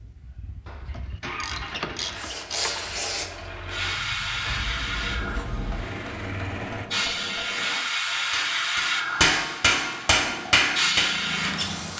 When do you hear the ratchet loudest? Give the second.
2 s.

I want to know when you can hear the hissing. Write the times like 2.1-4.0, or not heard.
2.1-11.9.